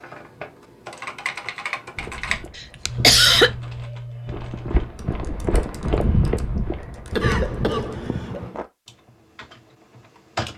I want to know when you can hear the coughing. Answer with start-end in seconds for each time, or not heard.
2.5-3.5, 7.1-8.6.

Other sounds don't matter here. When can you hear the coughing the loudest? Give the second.
3 s.